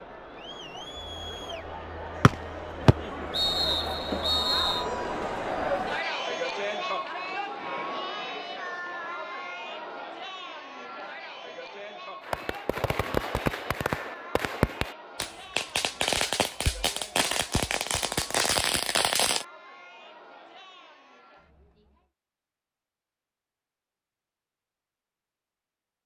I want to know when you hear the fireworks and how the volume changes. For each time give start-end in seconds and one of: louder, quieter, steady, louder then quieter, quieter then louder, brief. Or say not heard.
12.2-19.4 steady.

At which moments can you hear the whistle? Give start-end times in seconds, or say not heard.
2.2-4.8.